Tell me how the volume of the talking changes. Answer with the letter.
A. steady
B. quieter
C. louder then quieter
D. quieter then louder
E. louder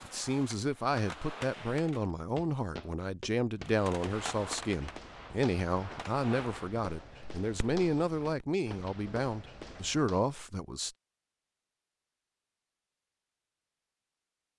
A.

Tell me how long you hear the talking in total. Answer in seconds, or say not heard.
11 s.